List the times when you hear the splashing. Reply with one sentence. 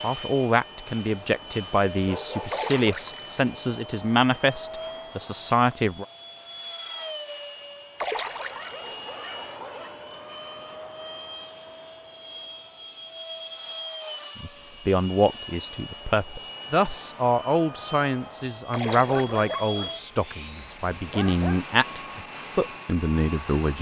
The splashing can be heard from 2.5 to 3.4 s, from 8.0 to 8.9 s and from 18.7 to 19.4 s.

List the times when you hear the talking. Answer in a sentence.
You can hear the talking from 0.0 to 6.0 s and from 14.3 to 23.7 s.